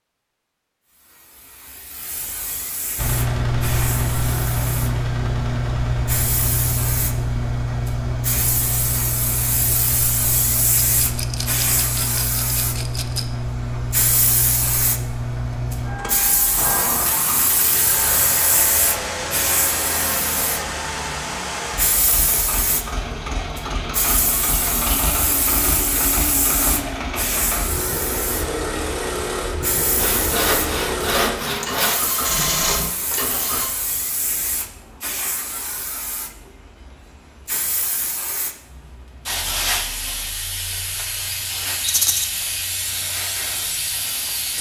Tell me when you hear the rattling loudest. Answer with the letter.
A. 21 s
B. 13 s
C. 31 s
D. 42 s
D.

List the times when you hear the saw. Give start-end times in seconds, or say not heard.
29.9-32.0.